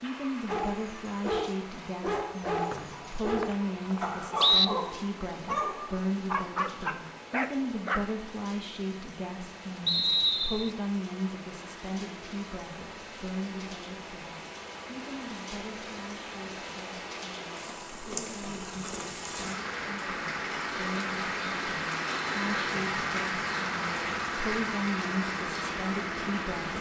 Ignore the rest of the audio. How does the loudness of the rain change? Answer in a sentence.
The loudness of the rain goes up.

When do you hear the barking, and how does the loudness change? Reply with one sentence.
You can hear the barking from 0.5 to 8.1 s, at a steady volume.